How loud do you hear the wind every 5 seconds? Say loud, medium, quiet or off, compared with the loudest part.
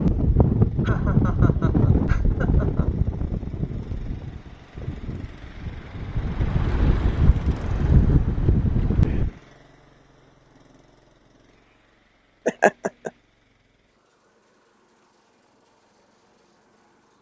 loud, loud, off, off.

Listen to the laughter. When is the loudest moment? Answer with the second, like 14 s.
13 s.